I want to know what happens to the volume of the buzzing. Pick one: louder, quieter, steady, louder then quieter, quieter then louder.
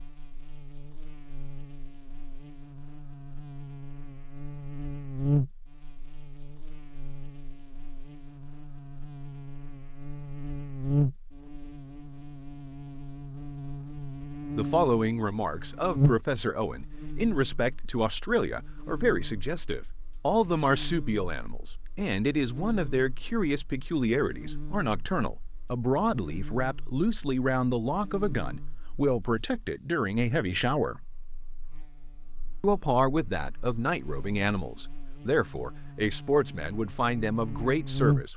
quieter.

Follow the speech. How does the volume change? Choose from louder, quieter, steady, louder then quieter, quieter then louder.
steady.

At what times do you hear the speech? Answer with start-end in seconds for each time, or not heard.
14.6-31.0, 32.6-38.3.